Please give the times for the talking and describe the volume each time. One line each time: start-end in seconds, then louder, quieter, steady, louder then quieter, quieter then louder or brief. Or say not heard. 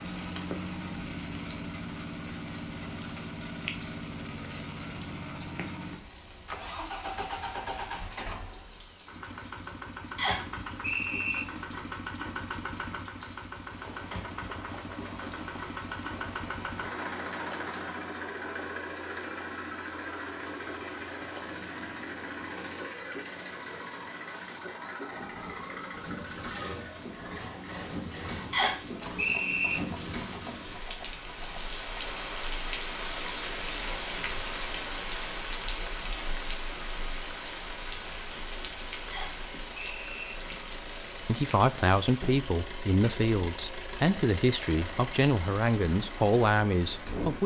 41.2-47.4 steady.